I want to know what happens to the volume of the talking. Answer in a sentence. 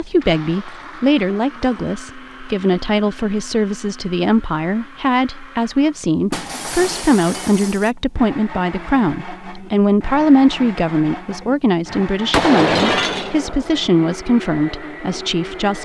The loudness of the talking stays about the same.